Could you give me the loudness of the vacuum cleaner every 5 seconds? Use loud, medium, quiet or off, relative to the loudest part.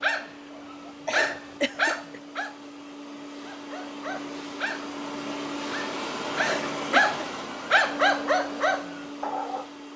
medium, loud.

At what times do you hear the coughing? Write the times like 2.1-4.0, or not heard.
1.1-2.2, 6.3-7.2.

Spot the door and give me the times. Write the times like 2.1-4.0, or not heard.
not heard.